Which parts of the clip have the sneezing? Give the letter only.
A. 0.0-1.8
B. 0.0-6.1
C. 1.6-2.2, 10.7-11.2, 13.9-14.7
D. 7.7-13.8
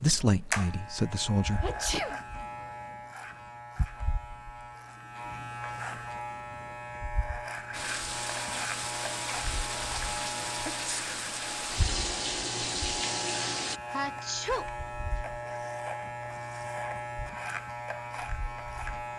C.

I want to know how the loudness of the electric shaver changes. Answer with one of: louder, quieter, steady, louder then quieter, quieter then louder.
steady.